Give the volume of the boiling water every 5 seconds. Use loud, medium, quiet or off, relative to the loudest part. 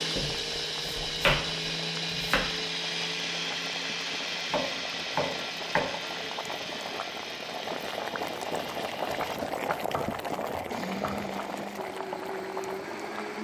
medium, loud, loud.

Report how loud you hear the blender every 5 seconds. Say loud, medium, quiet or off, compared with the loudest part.
loud, medium, medium.